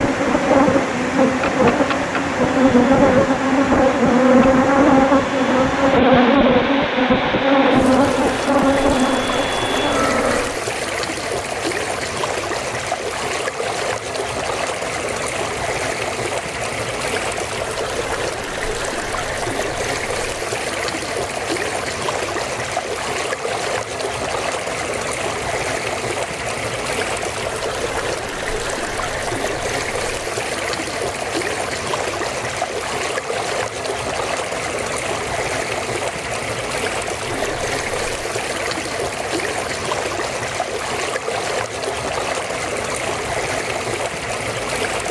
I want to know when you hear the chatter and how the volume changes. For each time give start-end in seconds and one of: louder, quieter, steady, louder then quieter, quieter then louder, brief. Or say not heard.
not heard.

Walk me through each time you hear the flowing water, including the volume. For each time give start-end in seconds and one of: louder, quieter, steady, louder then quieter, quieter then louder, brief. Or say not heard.
0.0-45.0 steady.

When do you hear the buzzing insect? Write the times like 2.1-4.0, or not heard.
0.0-10.6.